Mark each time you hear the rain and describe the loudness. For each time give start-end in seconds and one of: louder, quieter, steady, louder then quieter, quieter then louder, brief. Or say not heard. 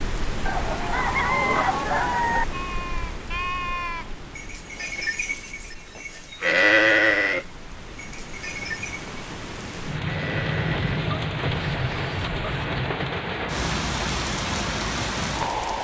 0.0-15.7 quieter then louder.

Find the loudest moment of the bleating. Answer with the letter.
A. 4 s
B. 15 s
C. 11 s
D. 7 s
D.